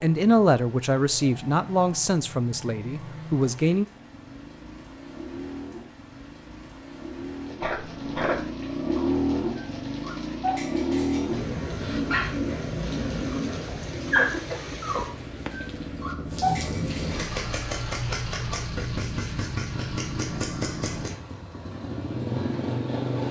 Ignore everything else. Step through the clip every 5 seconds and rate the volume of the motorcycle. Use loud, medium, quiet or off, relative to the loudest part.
quiet, loud, loud, loud, loud.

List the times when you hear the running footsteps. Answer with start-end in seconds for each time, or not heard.
not heard.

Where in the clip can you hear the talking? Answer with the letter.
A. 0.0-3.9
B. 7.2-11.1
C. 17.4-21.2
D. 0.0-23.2
A.